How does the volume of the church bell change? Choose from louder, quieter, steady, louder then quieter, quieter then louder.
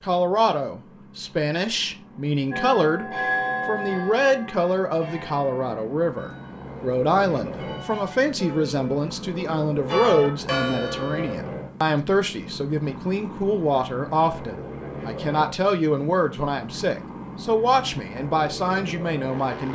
quieter then louder.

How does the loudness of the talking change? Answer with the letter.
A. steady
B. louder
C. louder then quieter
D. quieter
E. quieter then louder
A.